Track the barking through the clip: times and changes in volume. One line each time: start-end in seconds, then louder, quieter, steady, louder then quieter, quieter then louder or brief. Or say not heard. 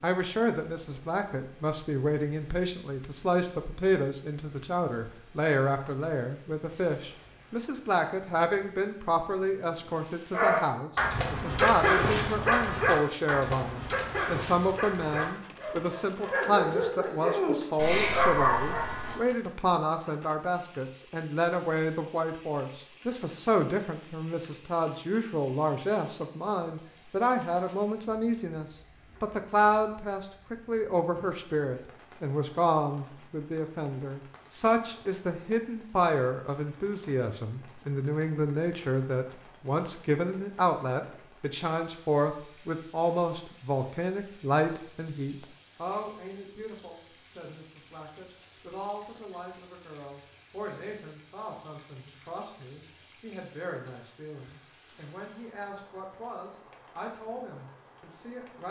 10.3-19.2 quieter then louder.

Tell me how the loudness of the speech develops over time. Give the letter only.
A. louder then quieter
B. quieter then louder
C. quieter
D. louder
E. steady
C.